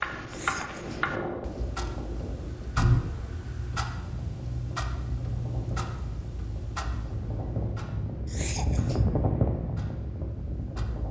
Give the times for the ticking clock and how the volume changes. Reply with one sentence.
The ticking clock can be heard from 0.0 to 11.0 s, getting quieter.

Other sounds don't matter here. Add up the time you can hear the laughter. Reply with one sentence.
The laughter can be heard for 2 seconds in total.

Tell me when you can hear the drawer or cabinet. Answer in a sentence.
You can hear the drawer or cabinet from 2.8 to 3.3 s.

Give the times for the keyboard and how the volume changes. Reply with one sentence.
The keyboard can't be heard in this clip.